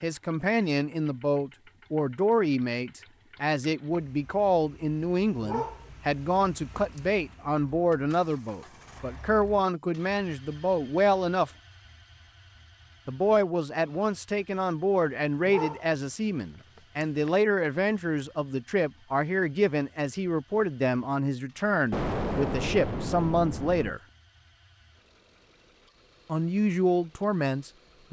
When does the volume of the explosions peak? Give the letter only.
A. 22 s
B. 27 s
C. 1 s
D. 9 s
A.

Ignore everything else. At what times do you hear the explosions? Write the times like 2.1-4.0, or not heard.
21.9-23.9.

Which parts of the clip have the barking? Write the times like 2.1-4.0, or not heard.
5.4-7.0, 15.4-16.0, 16.8-17.4.